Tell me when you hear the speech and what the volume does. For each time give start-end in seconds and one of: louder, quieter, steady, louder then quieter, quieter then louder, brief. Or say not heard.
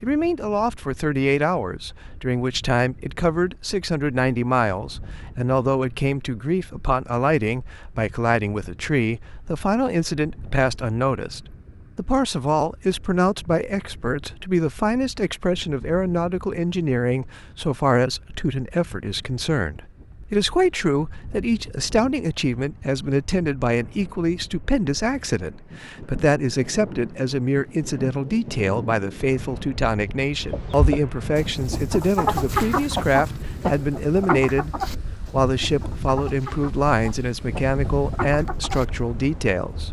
0.0-39.8 steady.